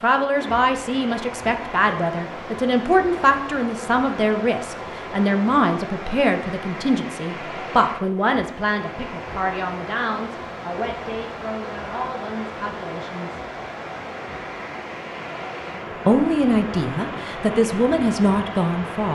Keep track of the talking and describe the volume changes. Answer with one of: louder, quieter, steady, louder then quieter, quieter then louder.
quieter then louder.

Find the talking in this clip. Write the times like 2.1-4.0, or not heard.
0.0-13.4, 16.1-19.1.